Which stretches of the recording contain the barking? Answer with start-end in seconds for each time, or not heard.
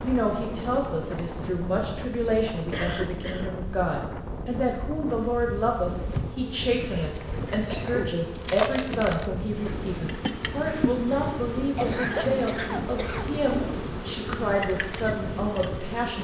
not heard.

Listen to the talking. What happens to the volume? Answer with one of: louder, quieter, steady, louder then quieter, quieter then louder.
steady.